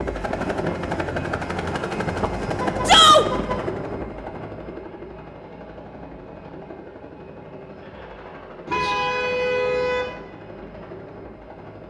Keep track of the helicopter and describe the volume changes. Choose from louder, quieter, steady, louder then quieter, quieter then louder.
quieter.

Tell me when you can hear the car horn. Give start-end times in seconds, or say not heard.
2.5-3.6, 8.7-10.2.